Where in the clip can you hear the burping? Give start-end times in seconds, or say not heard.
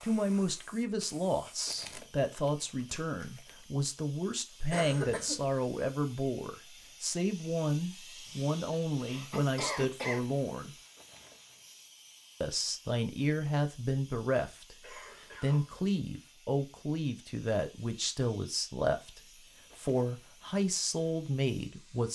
not heard.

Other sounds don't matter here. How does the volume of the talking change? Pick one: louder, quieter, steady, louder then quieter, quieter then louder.
steady.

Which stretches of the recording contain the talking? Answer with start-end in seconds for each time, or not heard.
0.0-10.8, 12.4-22.1.